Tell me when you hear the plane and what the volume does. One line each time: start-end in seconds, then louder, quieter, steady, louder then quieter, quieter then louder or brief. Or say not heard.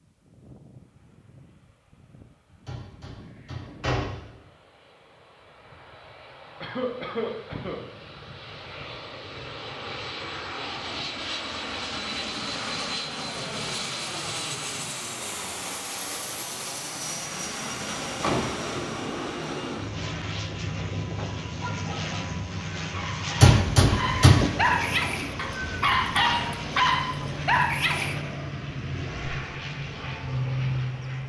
0.0-31.2 louder.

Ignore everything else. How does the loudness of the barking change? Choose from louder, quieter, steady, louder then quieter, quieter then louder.
louder.